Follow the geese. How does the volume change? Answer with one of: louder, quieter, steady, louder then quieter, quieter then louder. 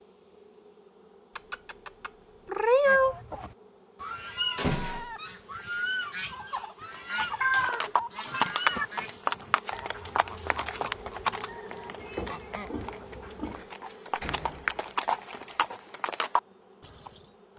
quieter.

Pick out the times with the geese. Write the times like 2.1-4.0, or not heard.
2.9-12.9.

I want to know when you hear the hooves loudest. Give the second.
9 s.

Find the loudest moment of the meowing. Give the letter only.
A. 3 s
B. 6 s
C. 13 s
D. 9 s
A.